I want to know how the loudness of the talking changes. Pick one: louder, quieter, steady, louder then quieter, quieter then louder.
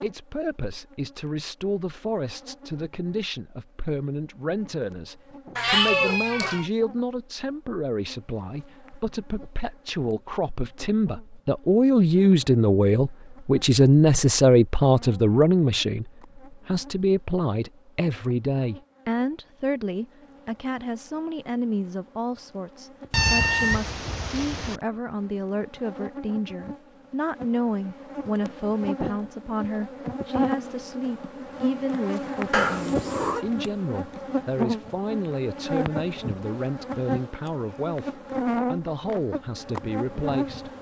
louder then quieter.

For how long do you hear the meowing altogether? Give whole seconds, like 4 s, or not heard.
4 s.